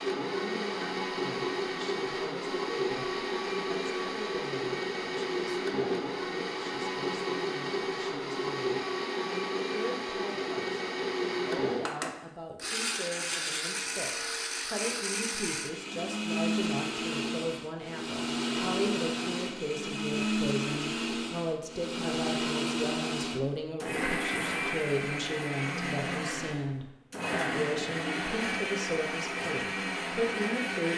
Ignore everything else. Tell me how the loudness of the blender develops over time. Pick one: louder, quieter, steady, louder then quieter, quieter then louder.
steady.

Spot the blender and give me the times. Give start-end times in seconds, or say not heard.
0.0-30.9.